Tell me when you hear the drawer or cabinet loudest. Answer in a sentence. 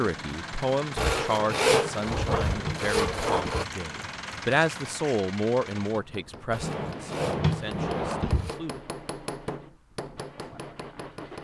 The volume of the drawer or cabinet peaks at 7 seconds.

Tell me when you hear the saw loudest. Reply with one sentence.
The loudest moment of the saw is at 2 seconds.